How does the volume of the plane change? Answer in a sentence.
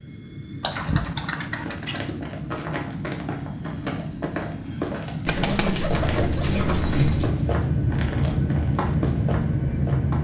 The volume of the plane goes up.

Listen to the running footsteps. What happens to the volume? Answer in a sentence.
The loudness of the running footsteps stays about the same.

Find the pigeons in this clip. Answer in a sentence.
You can hear the pigeons from 0.6 to 2.0 s and from 5.2 to 7.3 s.